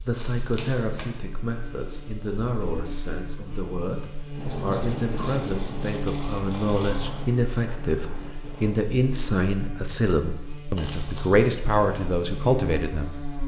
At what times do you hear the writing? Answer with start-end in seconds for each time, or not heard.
4.3-8.8.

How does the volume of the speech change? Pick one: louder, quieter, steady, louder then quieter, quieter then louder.
louder.